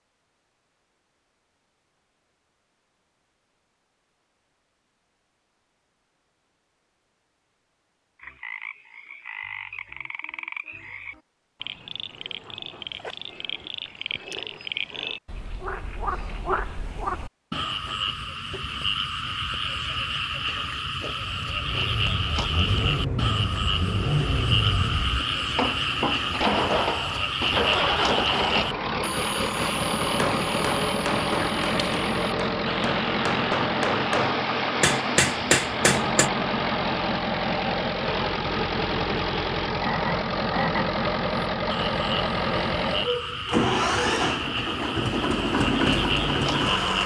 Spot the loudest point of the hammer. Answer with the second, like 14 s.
35 s.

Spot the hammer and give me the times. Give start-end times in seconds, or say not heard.
30.2-36.3.